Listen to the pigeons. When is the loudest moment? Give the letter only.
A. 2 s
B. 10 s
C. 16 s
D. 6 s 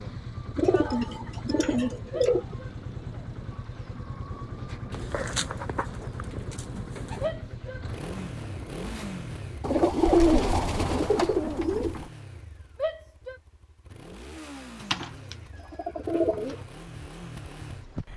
B.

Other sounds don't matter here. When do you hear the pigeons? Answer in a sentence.
You can hear the pigeons from 0.6 to 2.5 s, from 4.9 to 7.3 s, from 9.6 to 12.1 s and from 14.8 to 16.6 s.